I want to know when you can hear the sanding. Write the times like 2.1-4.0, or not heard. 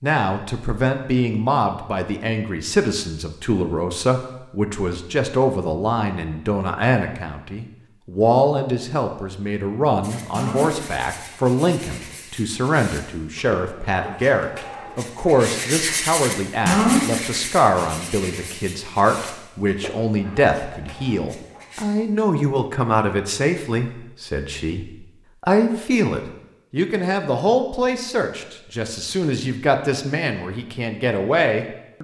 10.0-21.9.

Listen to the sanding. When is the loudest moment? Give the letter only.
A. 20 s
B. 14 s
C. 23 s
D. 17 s
D.